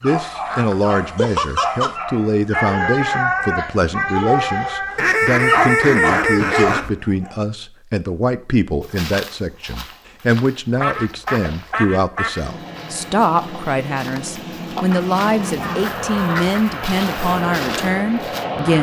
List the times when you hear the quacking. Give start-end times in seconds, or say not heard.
0.1-1.9, 5.0-6.9, 10.8-12.4, 14.9-16.6.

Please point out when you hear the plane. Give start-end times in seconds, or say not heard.
12.4-18.7.